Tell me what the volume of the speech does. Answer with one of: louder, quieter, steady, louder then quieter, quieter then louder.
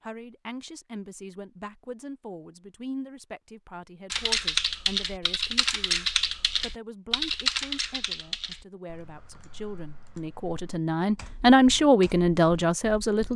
louder.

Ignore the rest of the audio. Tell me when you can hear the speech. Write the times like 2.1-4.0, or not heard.
0.0-13.3.